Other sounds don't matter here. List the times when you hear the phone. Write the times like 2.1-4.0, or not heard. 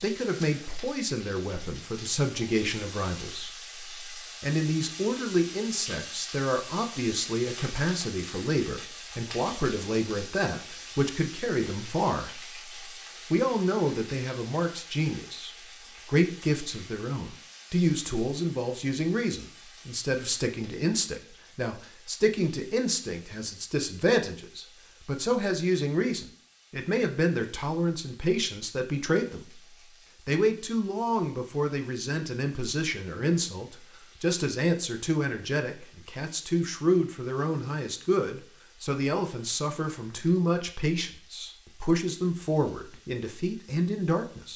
not heard.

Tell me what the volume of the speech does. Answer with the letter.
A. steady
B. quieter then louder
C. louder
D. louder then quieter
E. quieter
A.